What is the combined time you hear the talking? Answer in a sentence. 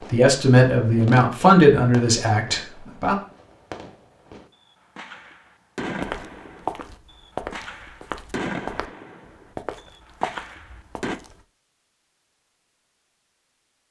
You can hear the talking for 3 seconds altogether.